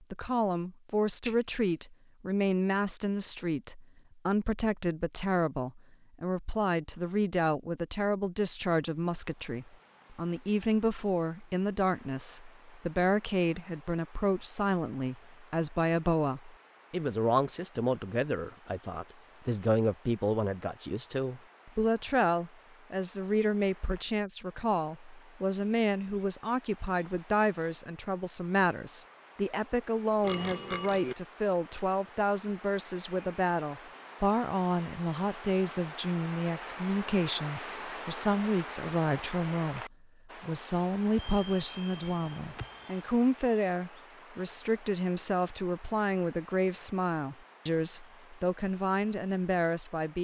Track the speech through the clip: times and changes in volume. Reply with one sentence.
The speech can be heard from 0.1 to 50.1 s, at a steady volume.